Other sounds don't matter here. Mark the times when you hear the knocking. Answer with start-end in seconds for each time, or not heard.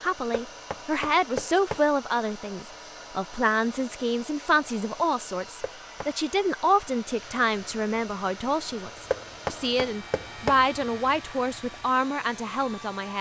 0.3-1.9, 5.6-6.1, 9.1-10.6.